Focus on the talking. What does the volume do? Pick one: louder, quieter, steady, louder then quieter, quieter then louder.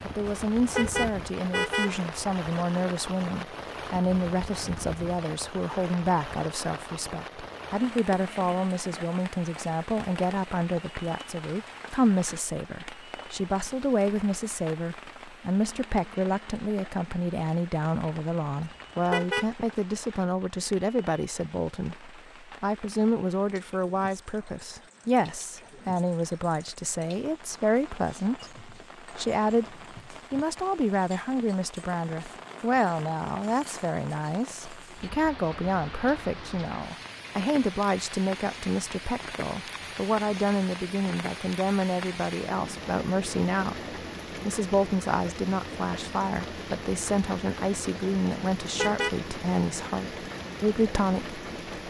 steady.